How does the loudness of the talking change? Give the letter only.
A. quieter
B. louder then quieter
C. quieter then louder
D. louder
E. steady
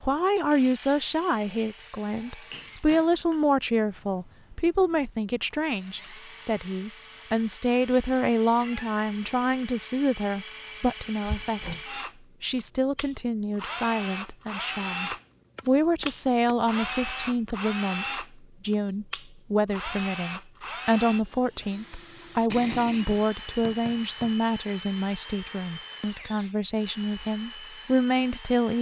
E.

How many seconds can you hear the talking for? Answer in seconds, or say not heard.
28 s.